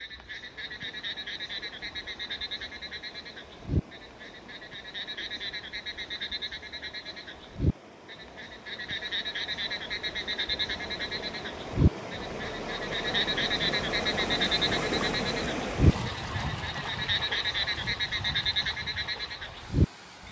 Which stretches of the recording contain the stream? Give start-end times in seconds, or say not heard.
0.0-20.2.